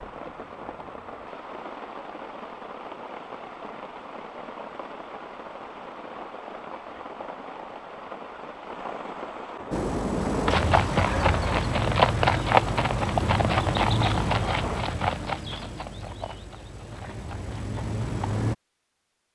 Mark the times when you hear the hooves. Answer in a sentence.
You can hear the hooves from 9.7 to 18.6 s.